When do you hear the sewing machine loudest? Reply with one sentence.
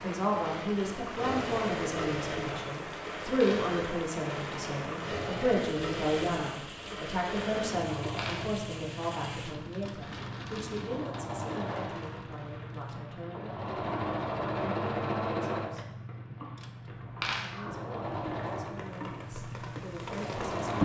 The volume of the sewing machine peaks at 15 seconds.